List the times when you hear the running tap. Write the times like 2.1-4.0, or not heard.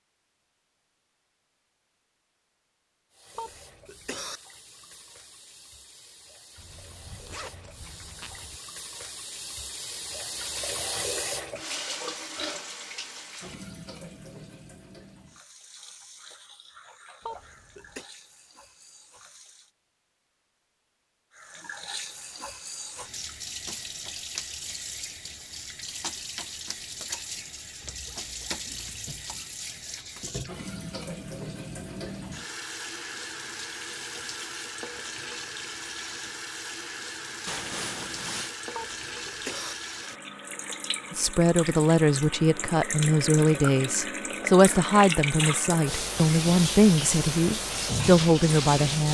3.1-19.7, 21.3-49.0.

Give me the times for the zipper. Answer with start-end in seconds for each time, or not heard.
6.5-8.6, 27.8-29.2, 37.5-38.5.